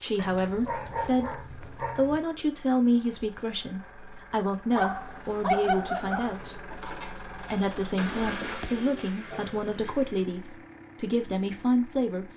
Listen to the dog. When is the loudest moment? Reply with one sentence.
The volume of the dog peaks at 6 seconds.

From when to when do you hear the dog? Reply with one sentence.
You can hear the dog from 0.1 to 2.2 s, from 4.8 to 6.6 s and from 8.4 to 9.6 s.